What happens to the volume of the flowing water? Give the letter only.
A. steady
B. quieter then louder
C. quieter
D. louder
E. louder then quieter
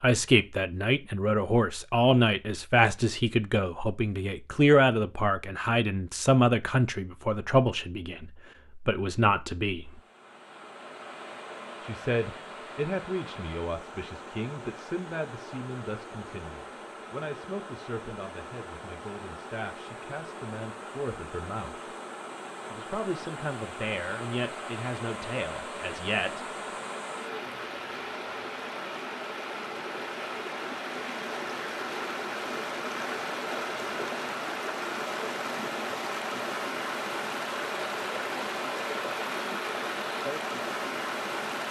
D.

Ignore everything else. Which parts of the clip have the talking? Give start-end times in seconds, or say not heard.
0.0-10.0, 11.8-21.9, 22.7-26.4.